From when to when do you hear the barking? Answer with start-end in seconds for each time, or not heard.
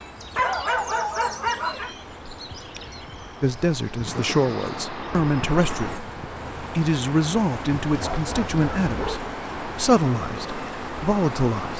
0.3-1.9, 7.8-9.3.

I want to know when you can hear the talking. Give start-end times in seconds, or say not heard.
3.4-11.7.